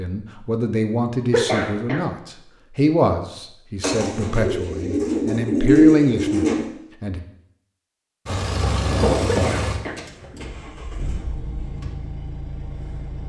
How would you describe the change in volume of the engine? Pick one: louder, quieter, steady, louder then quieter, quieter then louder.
quieter.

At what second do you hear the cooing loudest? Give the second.
6 s.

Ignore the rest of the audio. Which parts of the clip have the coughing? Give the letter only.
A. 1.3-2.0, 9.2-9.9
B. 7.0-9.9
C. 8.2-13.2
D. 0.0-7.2
A.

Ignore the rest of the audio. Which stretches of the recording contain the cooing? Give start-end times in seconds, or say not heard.
3.8-6.7.